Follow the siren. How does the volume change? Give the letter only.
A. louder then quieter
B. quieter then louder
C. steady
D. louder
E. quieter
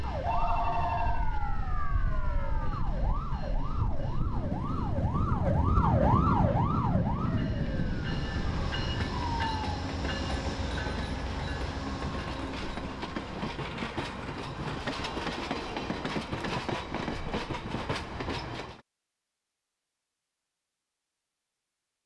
A.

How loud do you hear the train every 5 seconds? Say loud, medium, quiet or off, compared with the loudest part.
medium, loud, loud, loud, off.